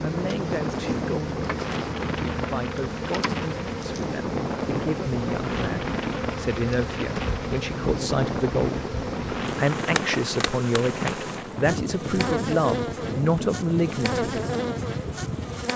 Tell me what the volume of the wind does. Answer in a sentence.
The volume of the wind stays about the same.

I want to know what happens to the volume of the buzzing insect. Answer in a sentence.
The volume of the buzzing insect stays about the same.